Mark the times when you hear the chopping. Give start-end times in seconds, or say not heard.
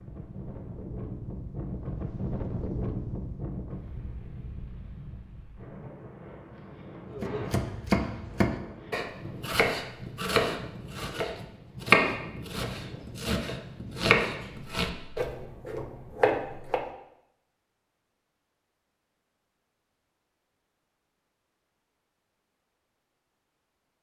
7.1-16.9.